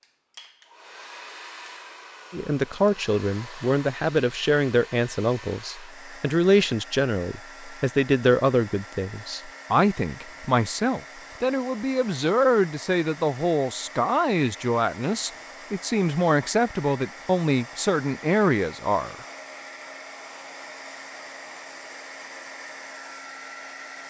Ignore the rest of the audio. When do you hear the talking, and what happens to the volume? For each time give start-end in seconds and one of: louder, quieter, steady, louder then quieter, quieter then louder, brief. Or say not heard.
2.3-19.1 steady.